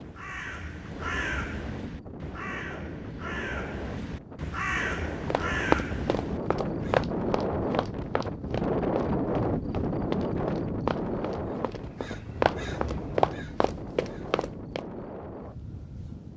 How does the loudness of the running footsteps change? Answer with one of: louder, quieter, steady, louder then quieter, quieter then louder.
quieter then louder.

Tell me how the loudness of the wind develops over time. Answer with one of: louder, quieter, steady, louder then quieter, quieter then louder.
louder then quieter.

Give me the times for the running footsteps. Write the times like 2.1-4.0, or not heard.
5.3-14.8.